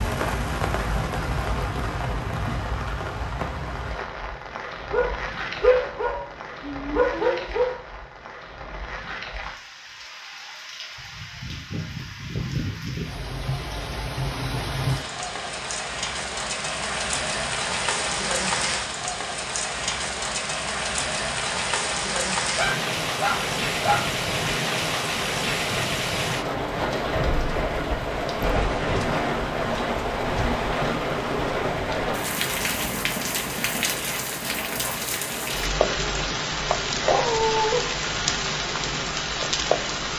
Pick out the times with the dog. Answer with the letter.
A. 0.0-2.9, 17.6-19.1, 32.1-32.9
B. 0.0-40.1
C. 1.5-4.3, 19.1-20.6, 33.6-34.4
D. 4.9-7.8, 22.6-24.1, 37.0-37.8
D.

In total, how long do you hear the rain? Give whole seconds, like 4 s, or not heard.
40 s.